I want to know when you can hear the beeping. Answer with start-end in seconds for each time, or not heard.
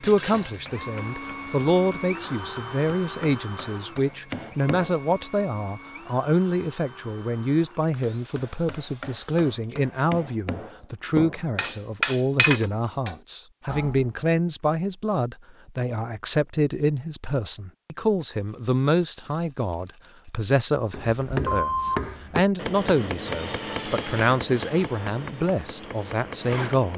21.4-22.1.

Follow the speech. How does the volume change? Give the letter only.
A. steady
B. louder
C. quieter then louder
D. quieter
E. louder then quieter
A.